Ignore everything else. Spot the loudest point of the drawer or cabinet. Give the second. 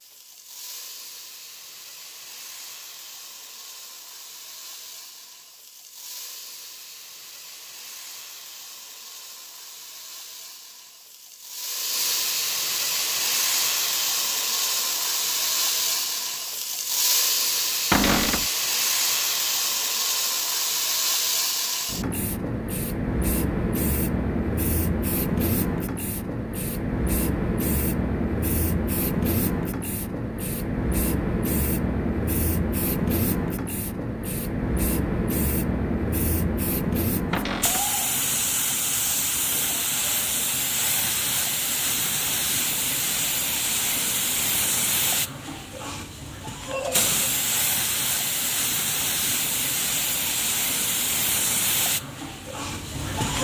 18 s.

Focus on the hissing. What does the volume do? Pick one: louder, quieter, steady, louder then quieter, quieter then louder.
louder.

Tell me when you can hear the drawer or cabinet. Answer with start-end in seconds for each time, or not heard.
17.9-18.4, 37.3-37.9.